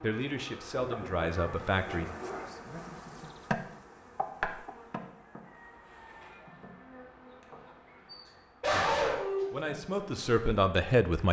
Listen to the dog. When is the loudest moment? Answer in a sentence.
The loudest moment of the dog is at 9 seconds.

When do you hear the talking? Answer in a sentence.
You can hear the talking from 0.0 to 2.1 s and from 8.7 to 11.2 s.